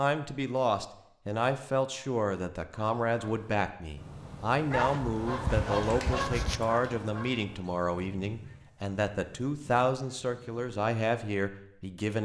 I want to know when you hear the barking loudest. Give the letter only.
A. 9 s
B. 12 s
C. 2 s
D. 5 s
D.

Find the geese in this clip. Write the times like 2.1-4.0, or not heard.
2.8-10.8.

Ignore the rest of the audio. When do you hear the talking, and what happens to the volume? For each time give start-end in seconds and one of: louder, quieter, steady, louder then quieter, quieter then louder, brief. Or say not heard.
0.0-12.1 steady.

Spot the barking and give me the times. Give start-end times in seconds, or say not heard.
4.7-6.6.